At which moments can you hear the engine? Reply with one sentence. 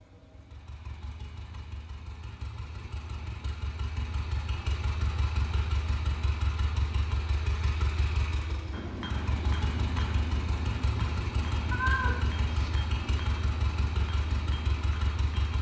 You can hear the engine from 0.0 to 15.5 s.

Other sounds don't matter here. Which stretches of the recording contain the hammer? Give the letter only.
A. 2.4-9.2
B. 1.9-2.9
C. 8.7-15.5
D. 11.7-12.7
C.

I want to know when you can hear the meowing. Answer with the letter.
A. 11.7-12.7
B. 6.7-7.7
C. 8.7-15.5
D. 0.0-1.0
A.